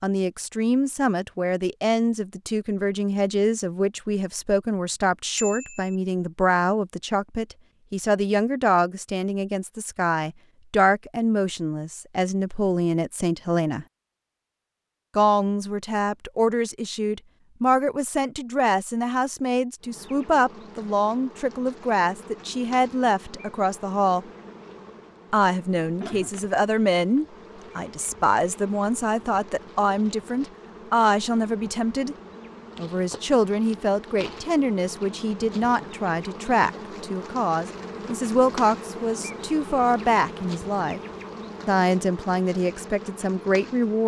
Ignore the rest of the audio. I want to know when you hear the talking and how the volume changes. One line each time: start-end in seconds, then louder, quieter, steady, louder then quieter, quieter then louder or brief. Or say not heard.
0.0-13.8 steady
15.2-24.2 steady
25.3-32.1 steady
32.8-41.0 steady
41.6-44.0 brief.